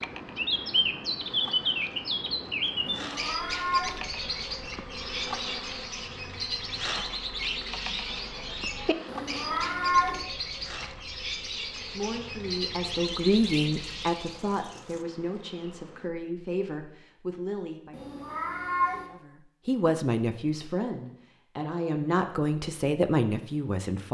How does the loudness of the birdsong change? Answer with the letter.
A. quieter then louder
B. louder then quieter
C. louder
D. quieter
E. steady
D.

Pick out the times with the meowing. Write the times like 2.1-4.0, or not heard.
2.9-4.0, 9.1-10.2, 17.9-19.1.